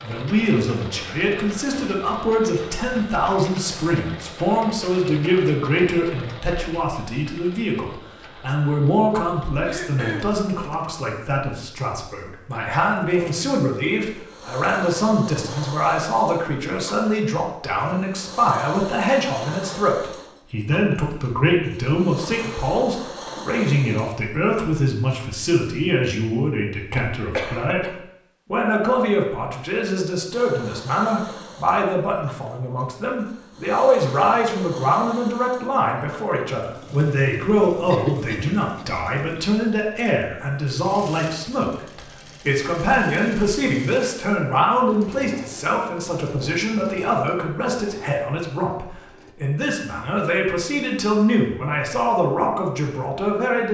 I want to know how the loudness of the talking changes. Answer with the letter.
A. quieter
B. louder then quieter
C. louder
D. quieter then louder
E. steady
E.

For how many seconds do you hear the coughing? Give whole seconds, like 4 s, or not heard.
3 s.